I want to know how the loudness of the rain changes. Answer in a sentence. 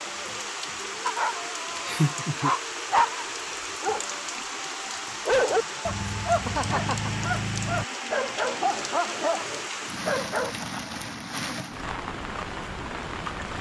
The loudness of the rain stays about the same.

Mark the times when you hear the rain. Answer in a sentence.
The rain can be heard from 0.0 to 13.5 s.